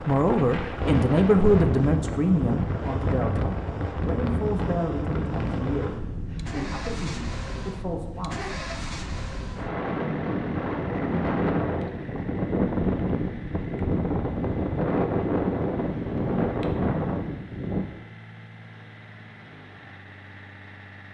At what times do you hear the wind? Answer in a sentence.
You can hear the wind from 0.0 to 17.9 s.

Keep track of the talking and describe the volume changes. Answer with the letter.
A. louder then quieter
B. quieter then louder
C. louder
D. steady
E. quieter
E.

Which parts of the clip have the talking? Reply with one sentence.
The talking can be heard from 0.1 to 8.6 s.